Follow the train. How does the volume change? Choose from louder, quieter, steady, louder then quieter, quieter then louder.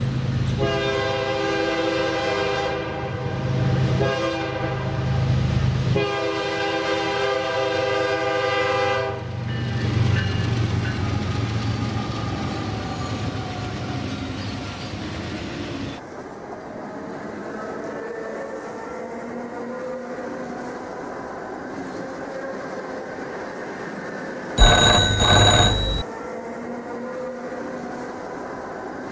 quieter.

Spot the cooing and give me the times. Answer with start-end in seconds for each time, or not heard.
not heard.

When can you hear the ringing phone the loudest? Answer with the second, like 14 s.
25 s.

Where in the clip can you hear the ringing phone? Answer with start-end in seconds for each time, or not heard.
24.6-26.1.